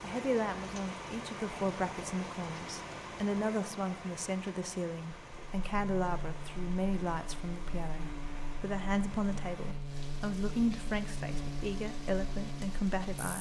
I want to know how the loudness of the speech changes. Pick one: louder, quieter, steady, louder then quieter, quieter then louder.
steady.